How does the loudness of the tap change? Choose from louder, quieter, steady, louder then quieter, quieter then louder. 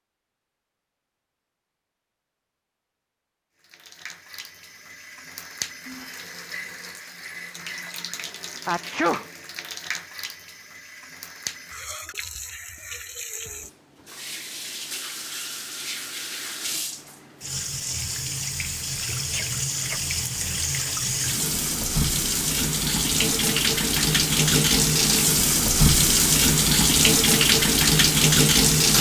louder.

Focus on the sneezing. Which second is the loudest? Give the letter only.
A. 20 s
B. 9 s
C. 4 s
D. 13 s
B.